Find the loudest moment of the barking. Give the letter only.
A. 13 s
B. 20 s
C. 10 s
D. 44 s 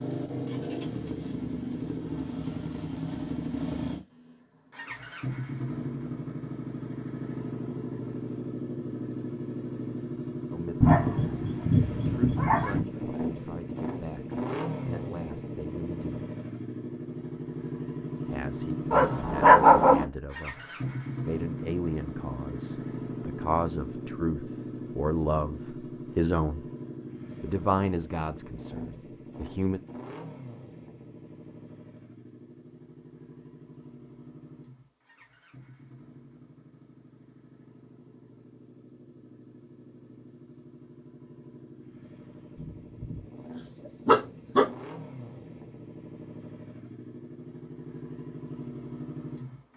B.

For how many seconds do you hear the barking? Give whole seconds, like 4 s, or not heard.
5 s.